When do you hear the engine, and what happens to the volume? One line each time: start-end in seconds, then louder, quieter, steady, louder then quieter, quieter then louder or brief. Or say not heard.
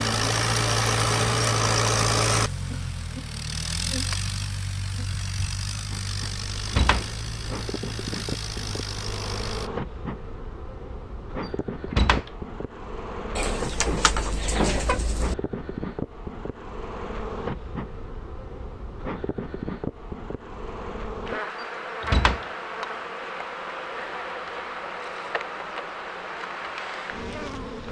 0.0-9.7 quieter.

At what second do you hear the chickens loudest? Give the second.
15 s.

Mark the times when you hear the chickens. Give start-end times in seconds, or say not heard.
13.3-15.3.